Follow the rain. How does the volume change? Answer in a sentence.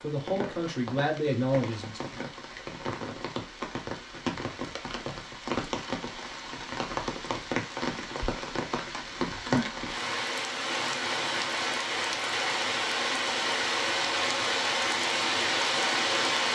The volume of the rain goes up.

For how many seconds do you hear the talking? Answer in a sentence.
The talking can be heard for 2 seconds in total.